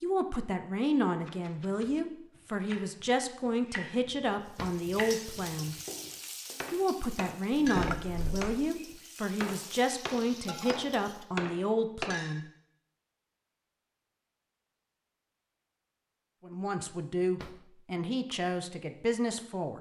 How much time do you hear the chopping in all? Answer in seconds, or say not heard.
11 s.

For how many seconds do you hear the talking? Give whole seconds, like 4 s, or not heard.
15 s.